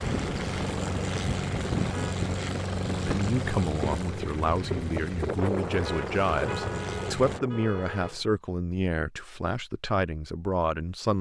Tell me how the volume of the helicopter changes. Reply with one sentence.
The volume of the helicopter goes down.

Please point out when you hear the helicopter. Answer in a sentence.
The helicopter can be heard from 0.0 to 7.4 s.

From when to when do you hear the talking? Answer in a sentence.
The talking can be heard from 3.0 to 11.1 s.